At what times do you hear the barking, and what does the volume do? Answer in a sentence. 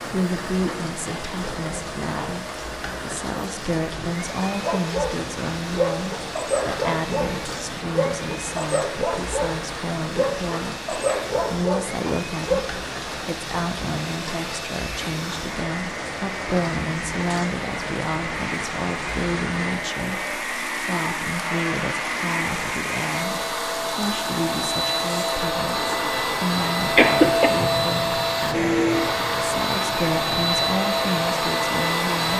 The barking can be heard from 4.6 to 12.7 s, at a steady volume.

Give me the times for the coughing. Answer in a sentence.
You can hear the coughing from 26.9 to 27.5 s.